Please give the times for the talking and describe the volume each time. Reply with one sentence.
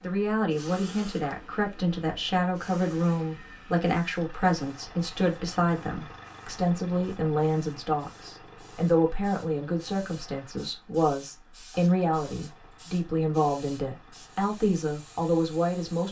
You can hear the talking from 0.0 to 16.0 s, at a steady volume.